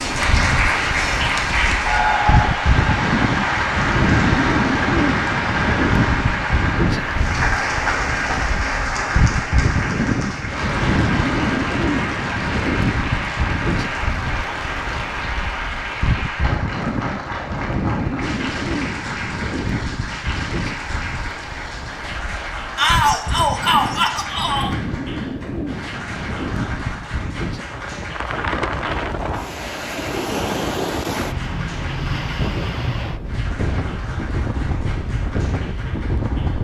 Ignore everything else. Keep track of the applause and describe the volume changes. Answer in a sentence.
The loudness of the applause goes down.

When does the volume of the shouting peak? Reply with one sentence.
The volume of the shouting peaks at 23 seconds.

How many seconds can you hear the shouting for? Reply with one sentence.
The shouting can be heard for 2 seconds in total.